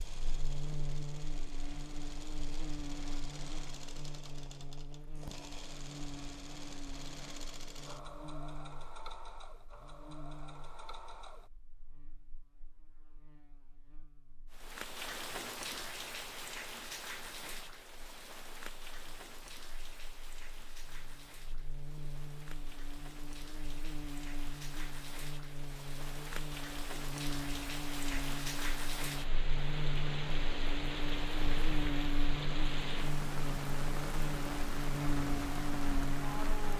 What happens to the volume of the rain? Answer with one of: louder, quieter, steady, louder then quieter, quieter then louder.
quieter then louder.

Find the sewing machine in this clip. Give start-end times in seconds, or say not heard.
0.0-11.5.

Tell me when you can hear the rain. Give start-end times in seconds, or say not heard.
14.5-36.7.